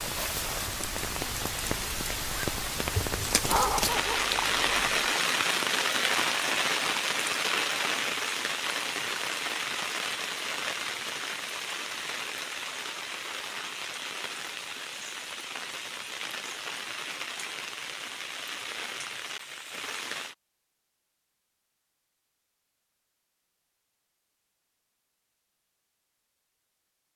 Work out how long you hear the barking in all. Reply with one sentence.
The barking can be heard for 2 seconds in total.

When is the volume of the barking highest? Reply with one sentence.
The loudest moment of the barking is at 4 seconds.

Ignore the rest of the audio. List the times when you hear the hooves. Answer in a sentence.
You can't hear the hooves here.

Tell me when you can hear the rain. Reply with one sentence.
The rain can be heard from 0.0 to 20.4 s.